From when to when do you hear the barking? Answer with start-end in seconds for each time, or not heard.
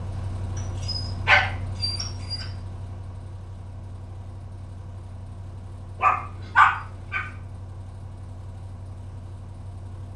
0.6-2.5, 6.0-7.2.